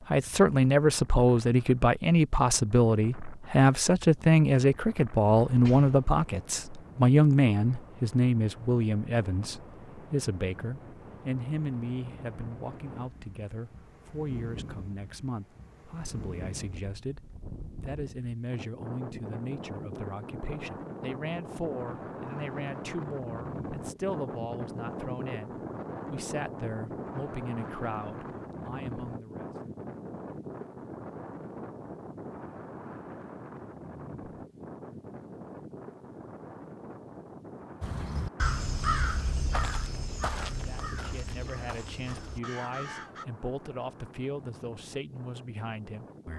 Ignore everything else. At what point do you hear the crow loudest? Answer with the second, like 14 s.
39 s.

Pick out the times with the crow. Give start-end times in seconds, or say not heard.
37.8-43.2.